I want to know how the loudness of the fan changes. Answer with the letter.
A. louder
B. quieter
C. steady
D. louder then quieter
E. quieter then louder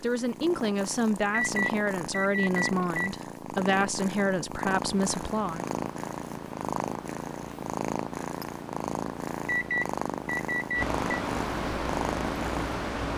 A.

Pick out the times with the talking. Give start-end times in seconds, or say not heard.
0.0-5.7.